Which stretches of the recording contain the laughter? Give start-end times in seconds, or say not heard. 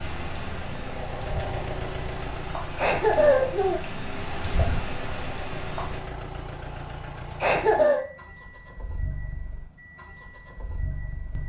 2.8-3.9, 7.4-8.0.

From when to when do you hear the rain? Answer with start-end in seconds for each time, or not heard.
0.0-6.0.